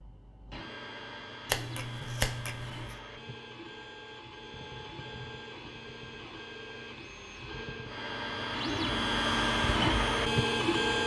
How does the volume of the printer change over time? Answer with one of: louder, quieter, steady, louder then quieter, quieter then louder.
louder.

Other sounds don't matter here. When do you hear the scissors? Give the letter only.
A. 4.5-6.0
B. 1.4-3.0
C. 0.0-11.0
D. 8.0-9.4
B.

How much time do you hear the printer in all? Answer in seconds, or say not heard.
11 s.